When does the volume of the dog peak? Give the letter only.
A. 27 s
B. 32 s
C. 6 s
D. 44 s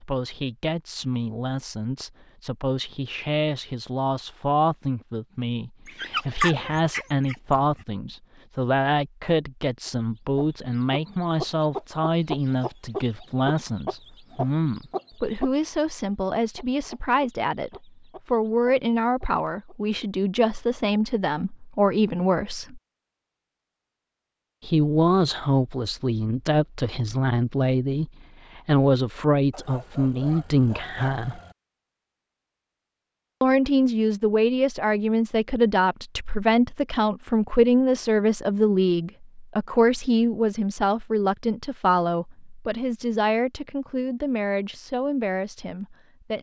C.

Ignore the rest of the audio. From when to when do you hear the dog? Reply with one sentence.
You can hear the dog from 5.8 to 7.8 s and from 29.5 to 31.6 s.